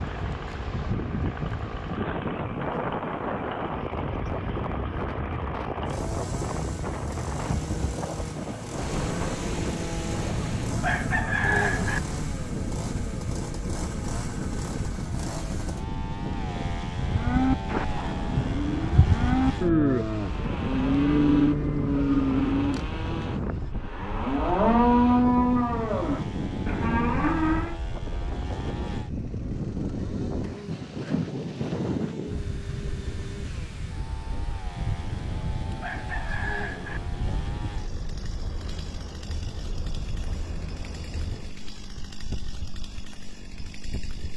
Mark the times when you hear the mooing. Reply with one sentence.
You can hear the mooing from 17.0 to 27.8 s.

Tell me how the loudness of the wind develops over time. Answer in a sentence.
The loudness of the wind goes down.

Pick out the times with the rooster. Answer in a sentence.
You can hear the rooster from 10.2 to 12.0 s and from 35.2 to 37.0 s.